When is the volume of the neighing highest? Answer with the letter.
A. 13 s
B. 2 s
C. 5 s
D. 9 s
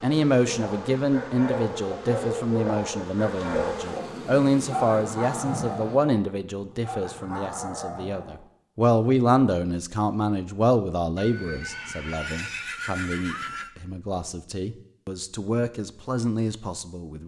A.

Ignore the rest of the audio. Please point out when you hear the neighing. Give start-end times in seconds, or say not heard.
11.2-13.7.